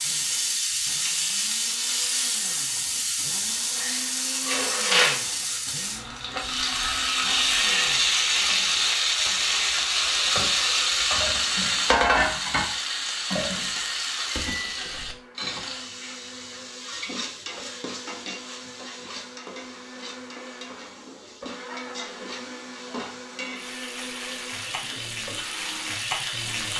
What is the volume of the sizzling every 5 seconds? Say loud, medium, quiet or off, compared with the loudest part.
loud, loud, loud, quiet, quiet, medium.